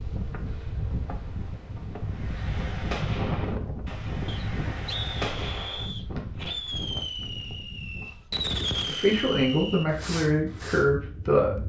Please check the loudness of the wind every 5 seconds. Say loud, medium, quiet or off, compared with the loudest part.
loud, medium, medium.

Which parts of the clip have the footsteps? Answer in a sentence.
The footsteps can't be heard in this clip.